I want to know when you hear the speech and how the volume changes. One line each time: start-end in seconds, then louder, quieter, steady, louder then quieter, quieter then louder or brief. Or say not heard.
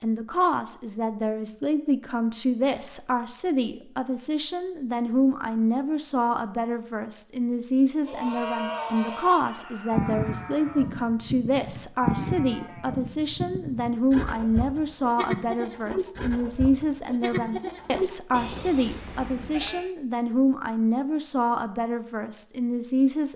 0.0-23.3 steady.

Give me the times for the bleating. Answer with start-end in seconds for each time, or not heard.
8.1-19.9.